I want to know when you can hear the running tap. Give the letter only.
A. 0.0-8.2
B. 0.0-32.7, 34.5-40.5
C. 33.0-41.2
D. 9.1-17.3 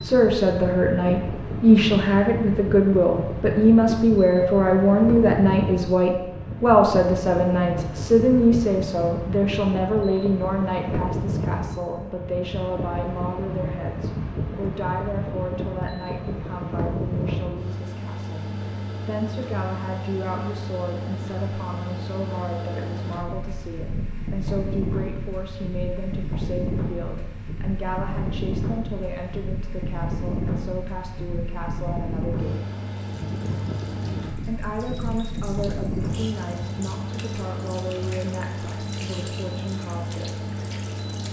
C.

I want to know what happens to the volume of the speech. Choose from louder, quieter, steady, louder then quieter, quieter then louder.
quieter.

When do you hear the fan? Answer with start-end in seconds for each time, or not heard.
0.0-41.2.